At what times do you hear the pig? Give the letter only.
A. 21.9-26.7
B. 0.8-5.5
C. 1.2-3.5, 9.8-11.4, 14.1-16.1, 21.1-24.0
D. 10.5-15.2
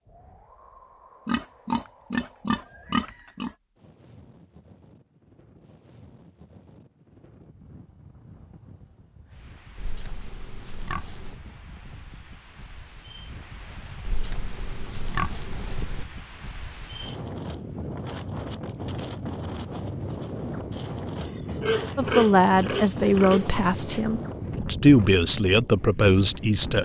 C.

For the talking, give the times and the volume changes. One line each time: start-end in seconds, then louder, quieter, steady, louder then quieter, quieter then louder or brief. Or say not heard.
21.9-26.7 quieter then louder.